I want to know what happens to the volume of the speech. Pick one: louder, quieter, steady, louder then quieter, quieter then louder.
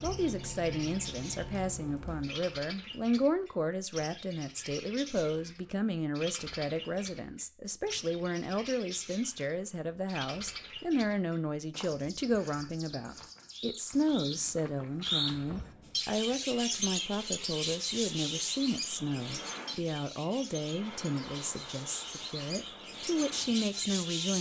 steady.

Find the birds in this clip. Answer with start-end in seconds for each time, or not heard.
0.0-24.3.